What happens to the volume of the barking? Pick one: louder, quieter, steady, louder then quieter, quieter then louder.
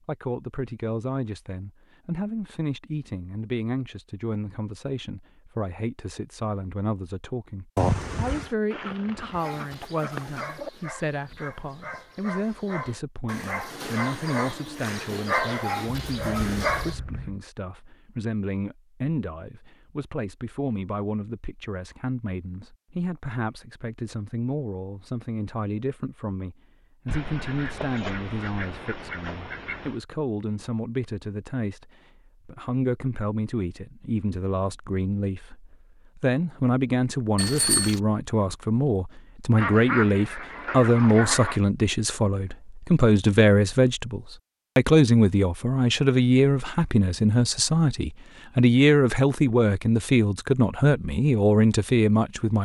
louder.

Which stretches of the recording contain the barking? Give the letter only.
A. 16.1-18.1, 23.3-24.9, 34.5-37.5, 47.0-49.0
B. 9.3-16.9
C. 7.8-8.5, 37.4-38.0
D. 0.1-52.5
B.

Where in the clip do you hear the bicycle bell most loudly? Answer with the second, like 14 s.
8 s.